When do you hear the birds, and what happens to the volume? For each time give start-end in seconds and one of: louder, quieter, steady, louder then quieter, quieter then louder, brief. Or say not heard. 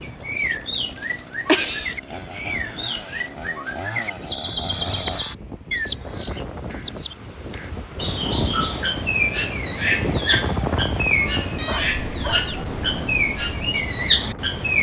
0.0-14.7 louder.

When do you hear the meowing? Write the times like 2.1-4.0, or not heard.
1.4-1.9, 11.4-12.6.